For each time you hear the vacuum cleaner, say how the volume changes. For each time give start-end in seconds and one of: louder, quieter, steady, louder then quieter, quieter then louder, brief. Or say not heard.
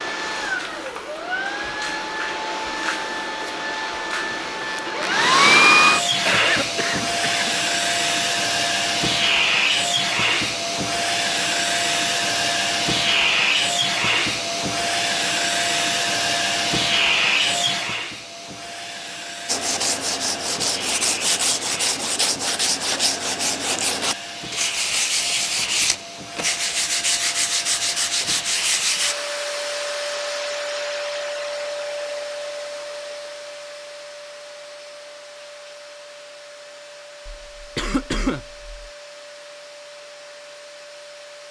0.0-41.4 quieter.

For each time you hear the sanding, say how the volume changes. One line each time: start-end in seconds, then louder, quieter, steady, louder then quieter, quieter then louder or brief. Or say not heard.
19.4-29.1 steady.